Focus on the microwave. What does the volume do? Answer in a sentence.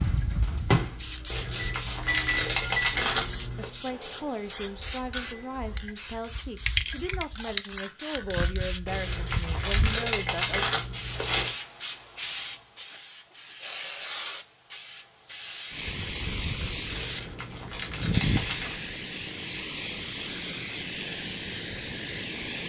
The volume of the microwave goes down.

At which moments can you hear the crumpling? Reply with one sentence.
The crumpling can be heard from 1.3 to 3.7 s, from 8.8 to 11.6 s and from 16.9 to 18.8 s.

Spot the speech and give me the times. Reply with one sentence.
The speech can be heard from 3.6 to 10.7 s.